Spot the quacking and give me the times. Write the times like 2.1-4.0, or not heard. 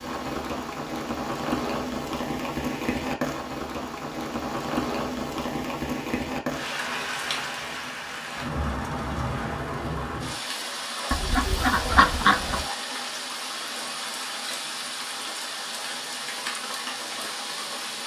11.1-12.7.